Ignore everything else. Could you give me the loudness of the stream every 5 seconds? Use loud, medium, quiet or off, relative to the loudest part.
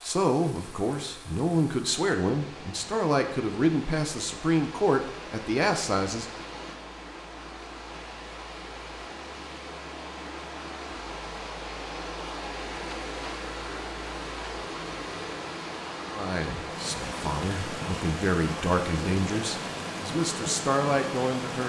medium, medium, loud, loud, loud.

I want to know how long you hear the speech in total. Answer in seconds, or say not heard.
12 s.